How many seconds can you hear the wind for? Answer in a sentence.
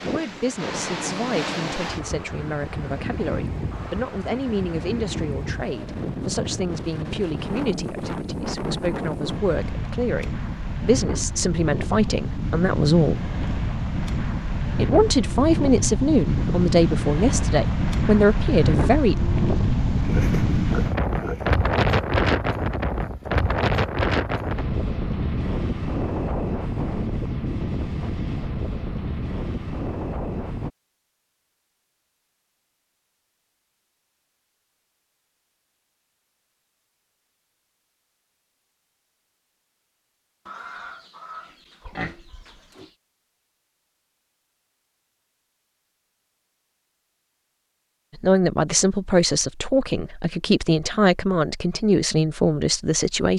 The wind can be heard for 31 seconds in total.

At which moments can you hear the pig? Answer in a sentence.
You can hear the pig from 19.8 to 21.6 s and from 40.5 to 42.9 s.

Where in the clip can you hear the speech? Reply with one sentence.
The speech can be heard from 0.0 to 13.2 s, from 14.8 to 19.1 s and from 48.1 to 53.3 s.